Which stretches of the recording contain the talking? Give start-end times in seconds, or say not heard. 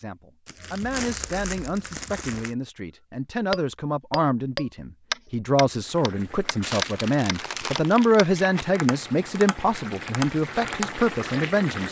0.0-11.8.